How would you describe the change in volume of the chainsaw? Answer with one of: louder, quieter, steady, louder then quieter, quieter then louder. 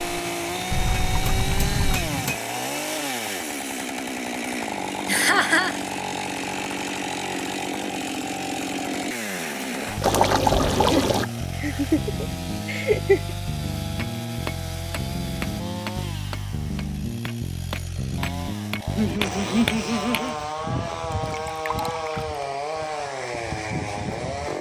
steady.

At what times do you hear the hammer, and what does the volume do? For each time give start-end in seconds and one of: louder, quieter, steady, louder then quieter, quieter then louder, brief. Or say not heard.
0.0-2.4 brief
13.9-20.2 quieter then louder.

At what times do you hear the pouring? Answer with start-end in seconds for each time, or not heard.
0.7-2.0, 10.0-11.2, 21.2-22.2.